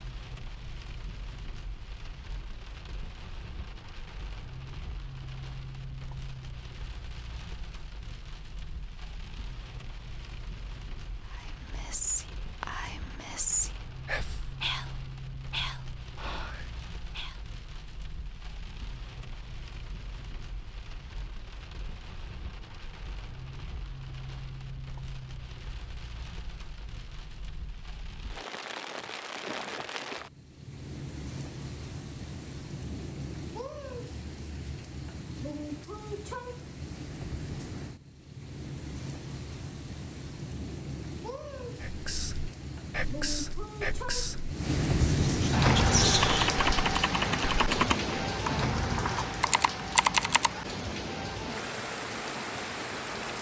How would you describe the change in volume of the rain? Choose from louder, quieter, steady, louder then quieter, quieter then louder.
louder.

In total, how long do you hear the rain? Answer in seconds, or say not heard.
53 s.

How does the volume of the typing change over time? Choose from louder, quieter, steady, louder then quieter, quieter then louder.
quieter then louder.